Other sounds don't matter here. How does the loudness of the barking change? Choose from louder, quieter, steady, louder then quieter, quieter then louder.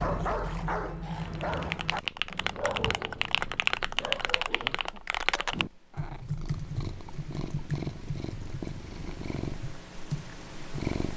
quieter then louder.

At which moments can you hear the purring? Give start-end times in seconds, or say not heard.
0.0-11.1.